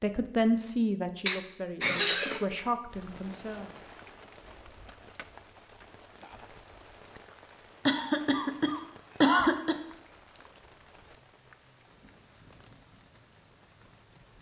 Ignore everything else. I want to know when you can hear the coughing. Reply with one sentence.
You can hear the coughing from 1.2 to 2.5 s and from 7.8 to 9.8 s.